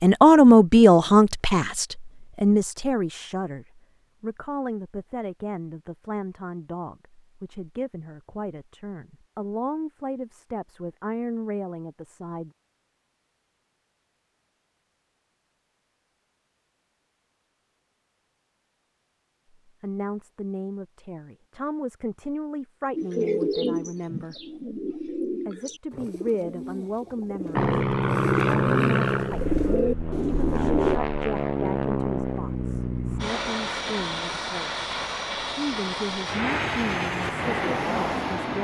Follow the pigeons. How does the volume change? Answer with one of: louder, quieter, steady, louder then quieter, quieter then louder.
quieter then louder.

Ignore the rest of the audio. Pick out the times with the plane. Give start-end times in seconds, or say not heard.
27.6-38.5.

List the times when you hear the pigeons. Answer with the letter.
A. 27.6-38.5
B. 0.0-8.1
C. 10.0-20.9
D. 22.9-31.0
D.